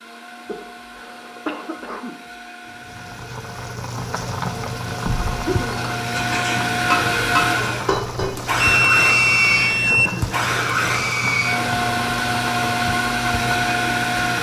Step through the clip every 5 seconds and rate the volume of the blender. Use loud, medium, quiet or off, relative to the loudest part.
quiet, loud, loud.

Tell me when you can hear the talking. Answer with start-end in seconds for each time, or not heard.
not heard.